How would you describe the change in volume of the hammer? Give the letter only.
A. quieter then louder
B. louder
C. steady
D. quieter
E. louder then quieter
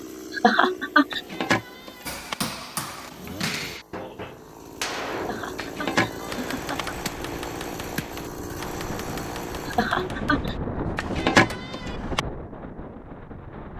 D.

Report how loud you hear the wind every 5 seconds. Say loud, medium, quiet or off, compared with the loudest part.
off, medium, loud.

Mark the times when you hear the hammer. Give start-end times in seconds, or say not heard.
2.0-11.6.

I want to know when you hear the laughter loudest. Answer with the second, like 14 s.
1 s.